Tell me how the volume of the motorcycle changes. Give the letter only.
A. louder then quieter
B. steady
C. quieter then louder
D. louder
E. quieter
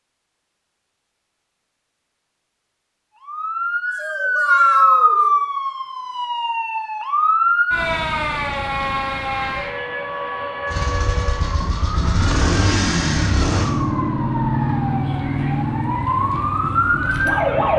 A.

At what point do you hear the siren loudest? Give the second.
5 s.